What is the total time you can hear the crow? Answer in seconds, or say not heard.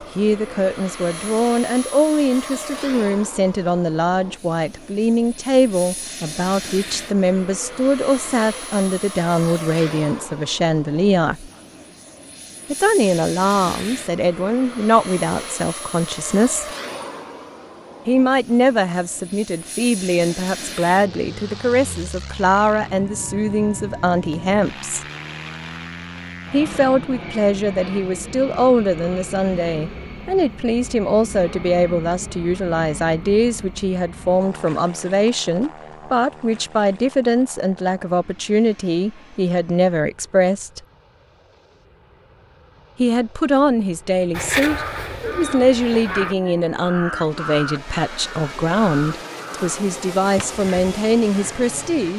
8 s.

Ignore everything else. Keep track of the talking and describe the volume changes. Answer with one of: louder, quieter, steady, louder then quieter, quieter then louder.
steady.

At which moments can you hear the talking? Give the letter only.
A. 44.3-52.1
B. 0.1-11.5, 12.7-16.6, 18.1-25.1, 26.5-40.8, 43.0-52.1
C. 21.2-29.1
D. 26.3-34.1
B.